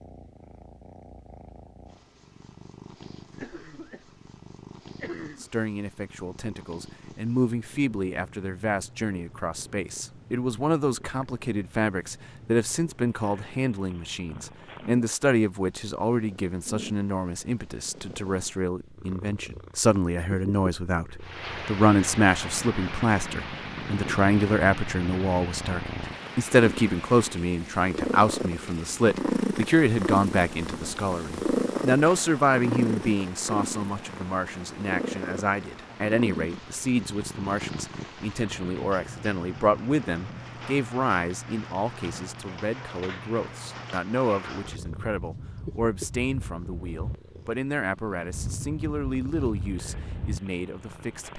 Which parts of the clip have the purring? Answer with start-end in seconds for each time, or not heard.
0.0-51.3.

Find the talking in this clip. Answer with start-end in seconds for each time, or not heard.
5.4-51.3.